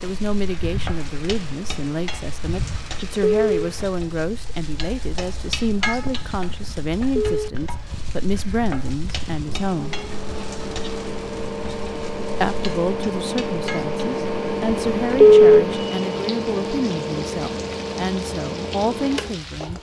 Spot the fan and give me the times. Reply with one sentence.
The fan can be heard from 0.0 to 19.7 s.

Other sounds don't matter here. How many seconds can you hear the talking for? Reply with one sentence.
The talking can be heard for 17 seconds in total.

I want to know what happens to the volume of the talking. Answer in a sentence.
The loudness of the talking stays about the same.